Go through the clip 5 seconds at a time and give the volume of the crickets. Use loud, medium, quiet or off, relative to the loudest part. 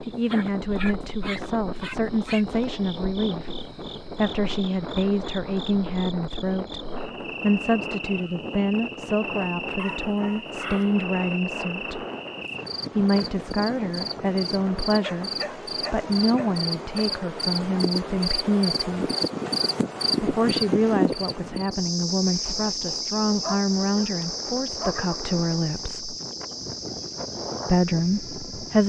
quiet, medium, medium, loud, loud, medium.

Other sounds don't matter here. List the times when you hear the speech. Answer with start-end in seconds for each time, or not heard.
0.0-12.0, 12.9-19.1, 20.2-26.1, 27.6-28.8.